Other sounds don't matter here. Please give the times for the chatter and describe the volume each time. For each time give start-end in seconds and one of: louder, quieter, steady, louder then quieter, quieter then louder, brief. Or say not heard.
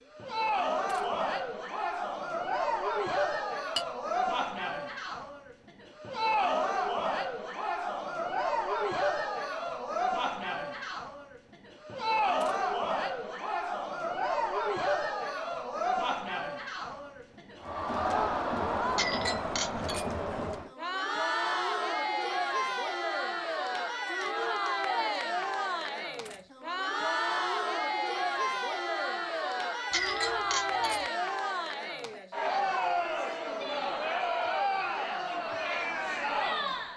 0.1-36.9 steady.